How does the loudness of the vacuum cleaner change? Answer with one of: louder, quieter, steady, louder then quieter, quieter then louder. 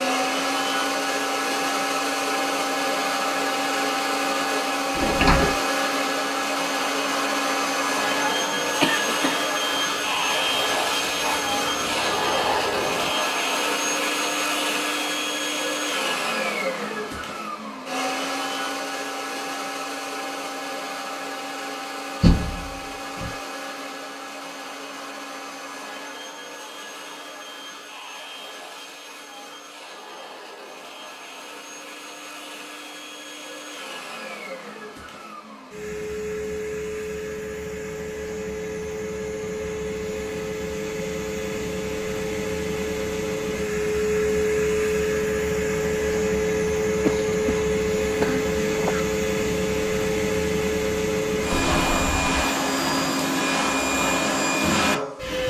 quieter then louder.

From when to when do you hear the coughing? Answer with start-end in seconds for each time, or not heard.
8.6-9.4, 47.0-49.0.